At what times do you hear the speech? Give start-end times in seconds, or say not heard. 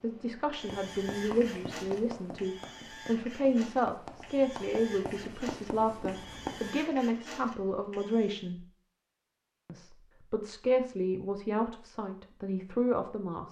0.0-8.7, 9.7-13.4.